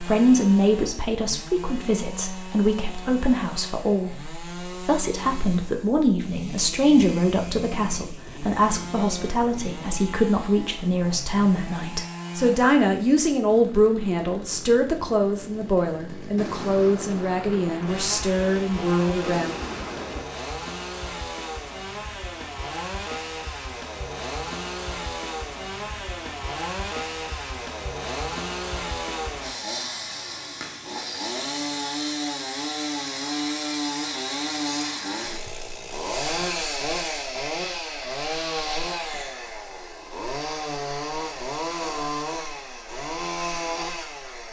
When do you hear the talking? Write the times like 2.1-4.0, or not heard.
0.0-19.5.